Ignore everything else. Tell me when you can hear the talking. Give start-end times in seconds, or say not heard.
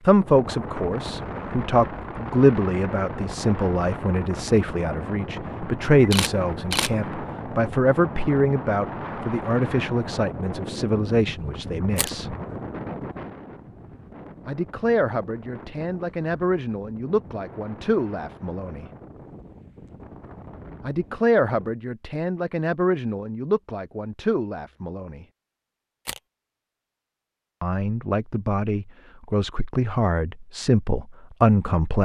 0.1-12.3, 14.4-18.9, 20.8-25.2, 27.6-31.9.